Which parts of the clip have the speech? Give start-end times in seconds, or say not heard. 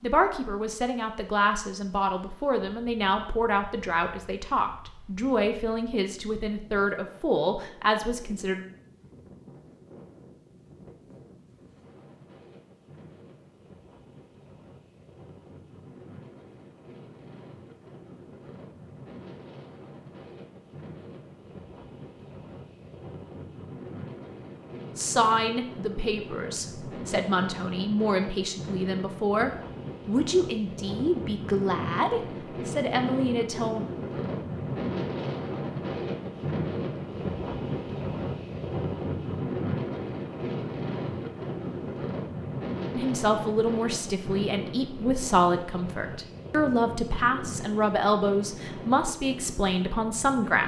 0.0-8.7, 24.9-33.9, 42.9-50.6.